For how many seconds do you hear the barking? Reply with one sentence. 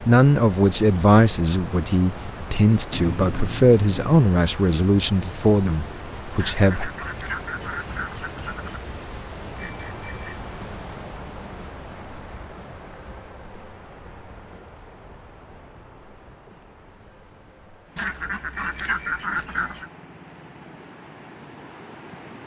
The barking can't be heard in this clip.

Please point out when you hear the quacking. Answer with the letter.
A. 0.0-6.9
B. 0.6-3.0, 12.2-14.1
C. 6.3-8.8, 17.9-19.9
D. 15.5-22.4
C.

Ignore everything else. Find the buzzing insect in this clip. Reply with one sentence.
You can't hear the buzzing insect here.